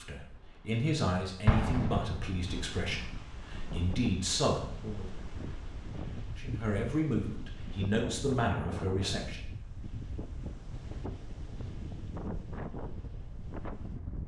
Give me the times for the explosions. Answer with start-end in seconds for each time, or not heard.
1.4-2.6.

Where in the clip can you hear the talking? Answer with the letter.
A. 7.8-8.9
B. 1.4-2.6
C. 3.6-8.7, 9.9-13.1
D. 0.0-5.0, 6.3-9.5
D.